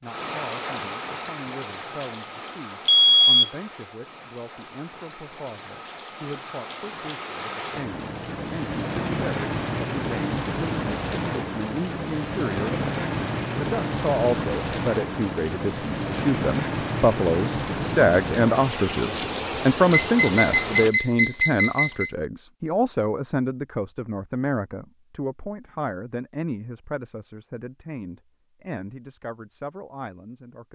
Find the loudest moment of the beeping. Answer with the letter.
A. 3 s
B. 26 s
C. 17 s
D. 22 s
A.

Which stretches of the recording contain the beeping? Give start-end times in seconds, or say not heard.
2.9-3.5, 19.9-22.1.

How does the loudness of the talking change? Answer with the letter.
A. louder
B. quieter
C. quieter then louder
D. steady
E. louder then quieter
E.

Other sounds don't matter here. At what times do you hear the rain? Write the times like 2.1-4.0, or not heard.
0.0-20.9.